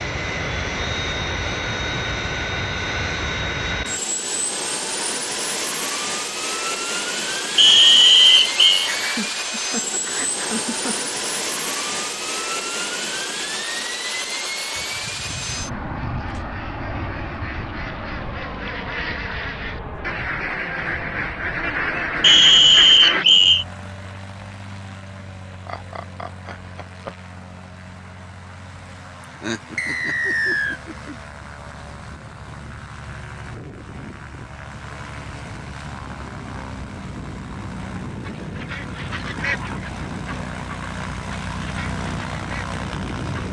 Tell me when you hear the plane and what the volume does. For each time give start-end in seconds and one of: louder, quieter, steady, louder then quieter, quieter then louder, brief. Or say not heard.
0.0-43.4 quieter then louder.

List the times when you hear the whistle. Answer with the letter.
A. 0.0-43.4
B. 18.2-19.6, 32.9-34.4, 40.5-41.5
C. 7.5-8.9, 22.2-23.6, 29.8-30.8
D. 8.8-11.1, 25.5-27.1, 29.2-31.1
C.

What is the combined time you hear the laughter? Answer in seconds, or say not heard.
6 s.